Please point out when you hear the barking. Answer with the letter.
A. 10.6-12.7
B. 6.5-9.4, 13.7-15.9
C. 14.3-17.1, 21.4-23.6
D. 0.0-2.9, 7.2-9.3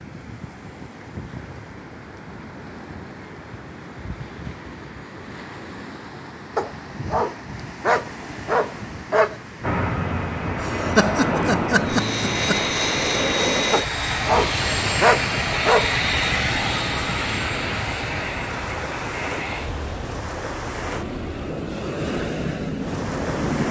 B.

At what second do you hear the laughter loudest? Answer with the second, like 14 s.
11 s.